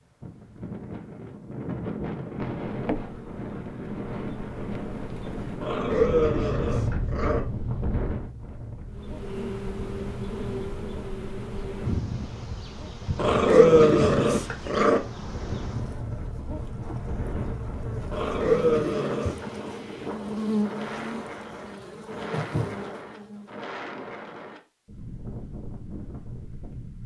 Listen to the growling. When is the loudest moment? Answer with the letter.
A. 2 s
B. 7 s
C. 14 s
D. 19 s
C.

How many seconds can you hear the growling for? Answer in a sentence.
The growling can be heard for 5 seconds in total.